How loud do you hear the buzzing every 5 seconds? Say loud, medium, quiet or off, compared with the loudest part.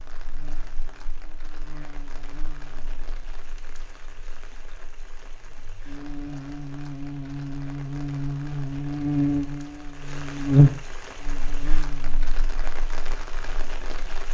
quiet, medium, loud.